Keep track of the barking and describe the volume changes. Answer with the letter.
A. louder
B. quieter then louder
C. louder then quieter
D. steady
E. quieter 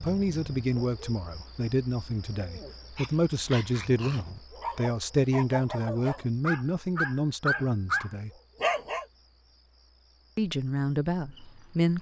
A.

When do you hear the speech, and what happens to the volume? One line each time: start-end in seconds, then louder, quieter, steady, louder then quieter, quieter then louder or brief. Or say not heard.
0.0-8.3 steady
10.3-11.9 brief.